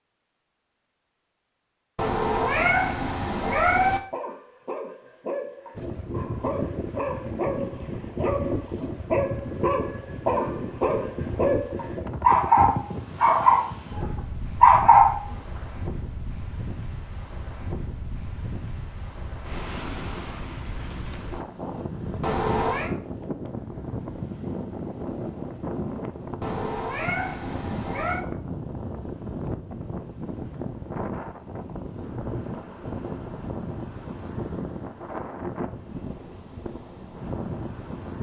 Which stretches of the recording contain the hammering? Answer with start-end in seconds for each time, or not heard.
not heard.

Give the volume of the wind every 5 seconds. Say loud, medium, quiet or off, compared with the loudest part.
off, loud, loud, medium, loud, loud, loud, loud.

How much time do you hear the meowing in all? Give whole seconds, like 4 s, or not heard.
5 s.